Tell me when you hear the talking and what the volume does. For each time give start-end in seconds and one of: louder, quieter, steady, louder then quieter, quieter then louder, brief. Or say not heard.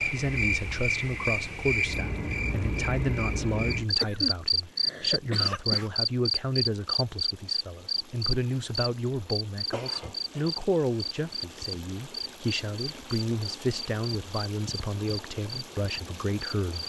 0.1-16.8 steady.